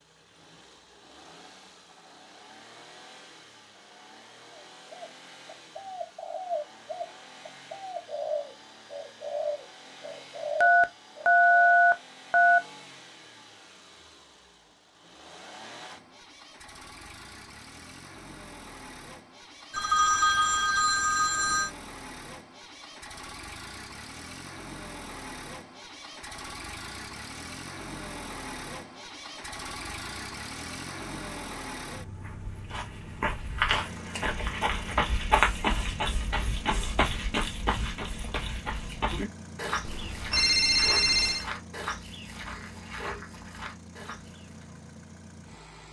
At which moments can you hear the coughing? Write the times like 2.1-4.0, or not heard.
not heard.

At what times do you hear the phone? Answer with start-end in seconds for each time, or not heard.
10.6-12.6, 19.7-21.7, 39.8-41.5.